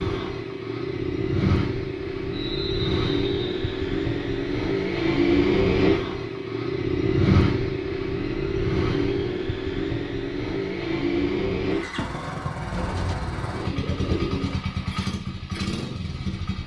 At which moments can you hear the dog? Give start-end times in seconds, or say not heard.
not heard.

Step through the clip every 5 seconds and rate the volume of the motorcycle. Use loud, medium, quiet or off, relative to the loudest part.
loud, loud, medium, medium.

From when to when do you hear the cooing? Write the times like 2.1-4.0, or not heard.
12.7-14.6.